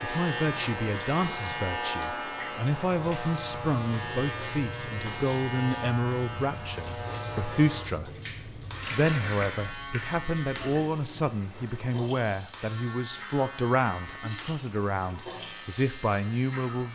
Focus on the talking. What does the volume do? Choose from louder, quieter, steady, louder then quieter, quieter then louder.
steady.